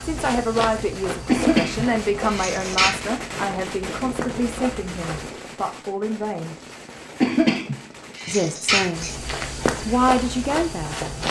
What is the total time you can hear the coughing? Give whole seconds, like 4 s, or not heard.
4 s.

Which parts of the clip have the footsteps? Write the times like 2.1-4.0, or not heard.
0.0-5.3, 8.9-11.2.